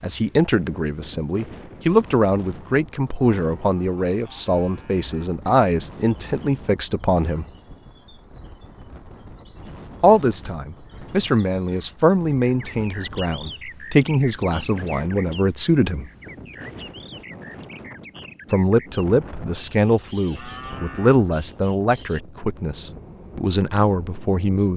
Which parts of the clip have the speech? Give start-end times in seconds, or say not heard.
0.0-7.5, 10.0-16.1, 18.5-24.7.